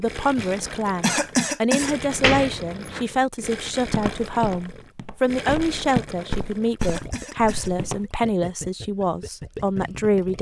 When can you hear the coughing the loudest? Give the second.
1 s.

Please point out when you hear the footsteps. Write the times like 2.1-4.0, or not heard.
3.9-8.0.